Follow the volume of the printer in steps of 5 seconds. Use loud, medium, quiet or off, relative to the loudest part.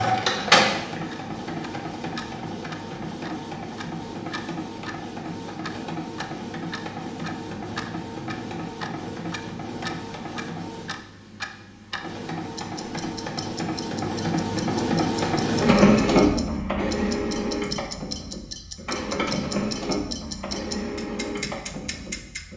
loud, medium, medium, loud, medium.